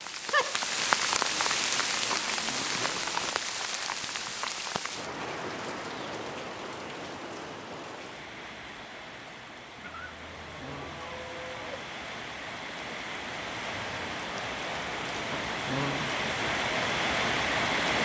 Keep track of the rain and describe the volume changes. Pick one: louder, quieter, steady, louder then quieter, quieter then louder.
quieter then louder.